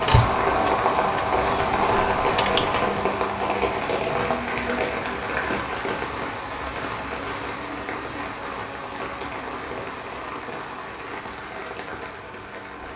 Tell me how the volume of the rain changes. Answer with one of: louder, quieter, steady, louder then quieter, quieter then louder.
quieter.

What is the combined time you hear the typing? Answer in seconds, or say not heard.
3 s.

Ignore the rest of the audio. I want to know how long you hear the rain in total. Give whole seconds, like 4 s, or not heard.
13 s.